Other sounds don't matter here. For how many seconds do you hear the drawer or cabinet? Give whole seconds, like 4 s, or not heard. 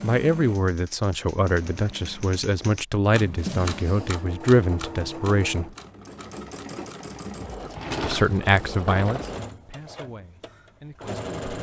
3 s.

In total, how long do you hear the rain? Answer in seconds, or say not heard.
not heard.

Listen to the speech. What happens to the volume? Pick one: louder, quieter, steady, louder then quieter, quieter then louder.
quieter.